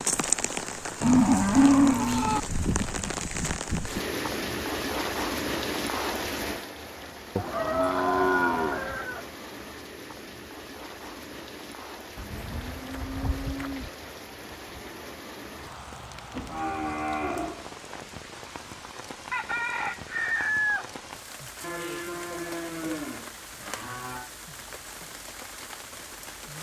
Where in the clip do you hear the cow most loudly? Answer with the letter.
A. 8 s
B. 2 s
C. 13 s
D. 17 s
B.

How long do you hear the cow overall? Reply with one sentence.
The cow can be heard for 9 seconds in total.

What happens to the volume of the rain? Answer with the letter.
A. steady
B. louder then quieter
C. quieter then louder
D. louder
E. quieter
E.